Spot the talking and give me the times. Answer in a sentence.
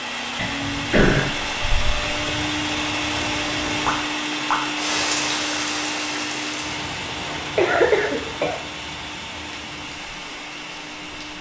The talking can't be heard in this clip.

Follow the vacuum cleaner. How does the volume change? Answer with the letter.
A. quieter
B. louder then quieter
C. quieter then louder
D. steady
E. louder
A.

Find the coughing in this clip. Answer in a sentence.
The coughing can be heard from 0.3 to 2.2 s and from 7.3 to 8.7 s.